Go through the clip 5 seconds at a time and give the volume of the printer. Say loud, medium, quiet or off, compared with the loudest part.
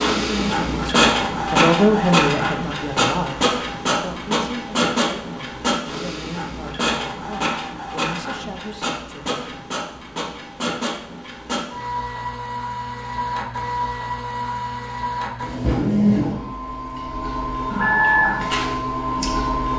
loud, medium, medium, loud.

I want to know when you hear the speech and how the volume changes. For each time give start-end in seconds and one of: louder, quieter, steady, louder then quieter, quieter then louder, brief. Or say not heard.
0.2-9.6 quieter.